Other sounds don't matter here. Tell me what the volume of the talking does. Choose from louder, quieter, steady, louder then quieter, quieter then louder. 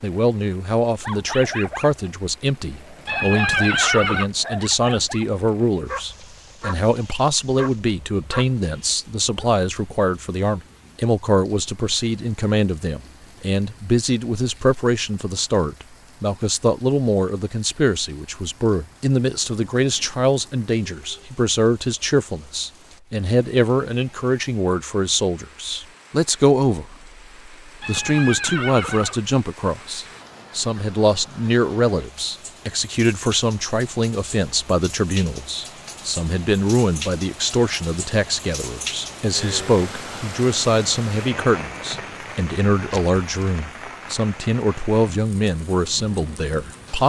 steady.